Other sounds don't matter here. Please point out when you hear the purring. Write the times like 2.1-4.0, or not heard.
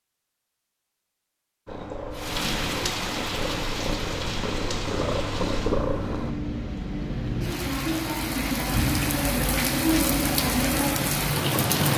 1.6-6.3.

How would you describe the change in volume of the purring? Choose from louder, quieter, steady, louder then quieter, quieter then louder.
louder.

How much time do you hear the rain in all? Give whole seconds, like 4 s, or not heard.
10 s.